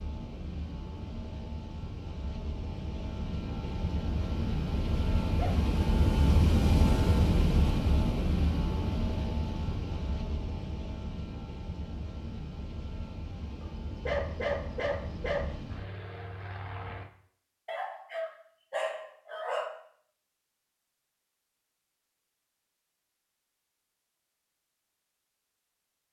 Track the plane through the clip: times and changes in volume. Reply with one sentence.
You can hear the plane from 0.0 to 17.1 s, getting louder then quieter.